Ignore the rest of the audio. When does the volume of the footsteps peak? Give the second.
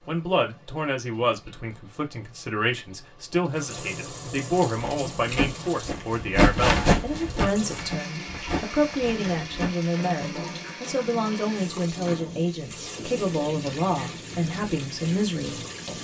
7 s.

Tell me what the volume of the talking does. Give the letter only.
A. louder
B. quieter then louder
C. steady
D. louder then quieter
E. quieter
C.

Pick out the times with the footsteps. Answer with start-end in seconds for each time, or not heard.
4.7-9.7.